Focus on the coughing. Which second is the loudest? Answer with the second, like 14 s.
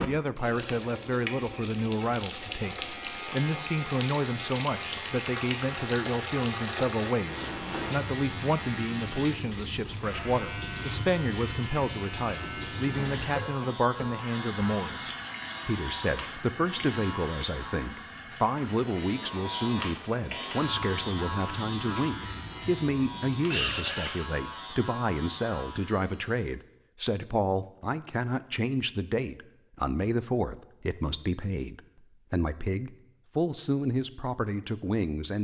24 s.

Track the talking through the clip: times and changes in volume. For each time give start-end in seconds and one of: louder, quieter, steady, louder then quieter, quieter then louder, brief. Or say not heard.
0.0-35.4 steady.